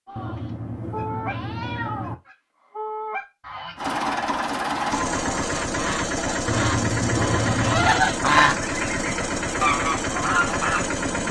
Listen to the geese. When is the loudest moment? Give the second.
8 s.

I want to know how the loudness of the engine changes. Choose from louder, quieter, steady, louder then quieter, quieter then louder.
steady.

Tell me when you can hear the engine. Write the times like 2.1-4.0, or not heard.
3.8-11.2.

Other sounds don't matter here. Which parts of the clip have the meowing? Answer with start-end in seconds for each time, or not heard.
0.1-2.1, 6.5-8.1.